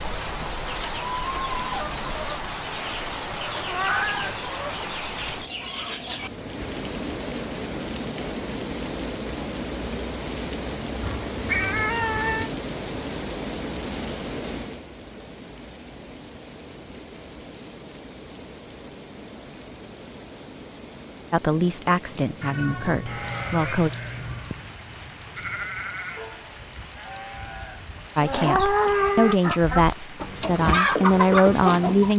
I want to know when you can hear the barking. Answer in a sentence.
You can't hear the barking here.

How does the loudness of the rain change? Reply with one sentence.
The volume of the rain goes down.